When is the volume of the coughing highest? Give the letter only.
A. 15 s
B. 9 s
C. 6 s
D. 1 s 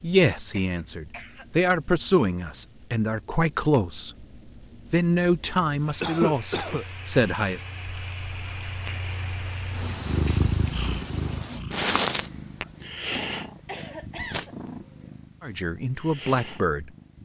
C.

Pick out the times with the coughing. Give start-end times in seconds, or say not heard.
0.5-1.4, 6.0-6.8, 13.6-14.6.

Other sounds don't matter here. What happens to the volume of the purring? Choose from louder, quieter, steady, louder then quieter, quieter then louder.
louder then quieter.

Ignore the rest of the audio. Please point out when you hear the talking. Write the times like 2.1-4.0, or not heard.
0.0-4.2, 4.9-7.7, 15.4-16.9.